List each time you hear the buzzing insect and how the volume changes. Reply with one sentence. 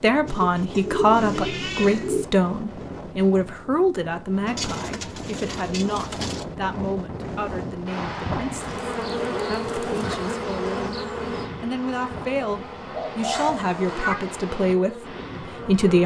You can hear the buzzing insect from 8.6 to 16.0 s, getting quieter.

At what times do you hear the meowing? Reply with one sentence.
You can hear the meowing from 1.1 to 2.1 s and from 13.3 to 14.2 s.